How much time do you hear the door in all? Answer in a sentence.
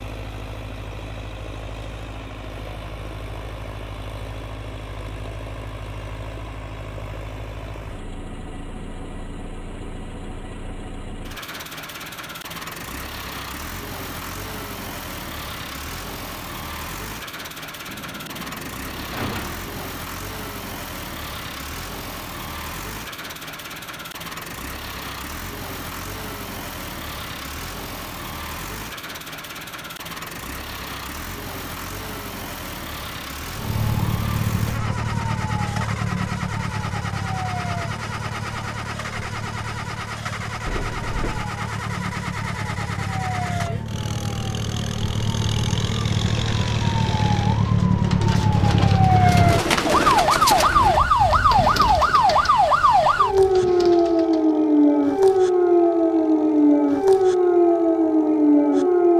You can hear the door for 3 seconds altogether.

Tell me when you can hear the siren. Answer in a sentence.
You can hear the siren from 33.5 to 59.1 s.